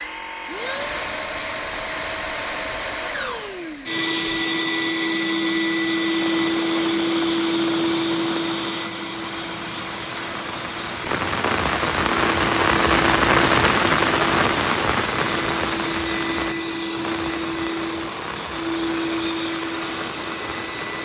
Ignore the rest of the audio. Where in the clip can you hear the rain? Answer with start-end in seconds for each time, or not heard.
6.2-20.9.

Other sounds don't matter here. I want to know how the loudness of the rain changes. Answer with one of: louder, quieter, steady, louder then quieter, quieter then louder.
louder then quieter.